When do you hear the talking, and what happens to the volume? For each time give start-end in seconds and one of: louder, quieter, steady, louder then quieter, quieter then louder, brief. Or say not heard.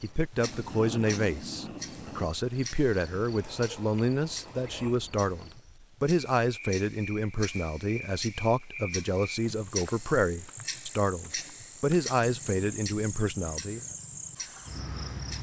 0.0-13.8 steady.